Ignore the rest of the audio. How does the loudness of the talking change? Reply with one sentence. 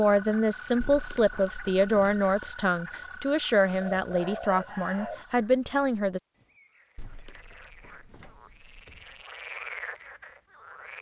The loudness of the talking stays about the same.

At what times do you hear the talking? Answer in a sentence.
You can hear the talking from 0.0 to 6.2 s.